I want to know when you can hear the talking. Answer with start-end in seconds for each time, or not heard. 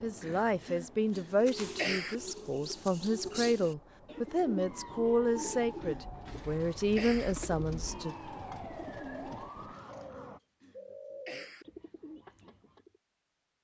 0.0-8.2.